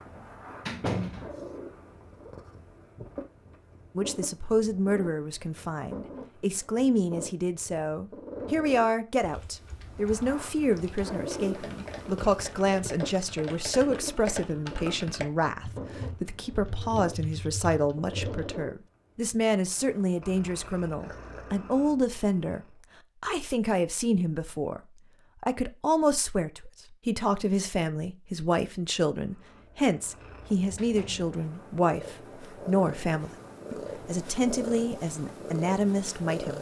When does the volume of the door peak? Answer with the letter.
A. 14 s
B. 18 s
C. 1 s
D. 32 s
C.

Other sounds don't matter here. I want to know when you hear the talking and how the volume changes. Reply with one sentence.
You can hear the talking from 4.0 to 36.5 s, at a steady volume.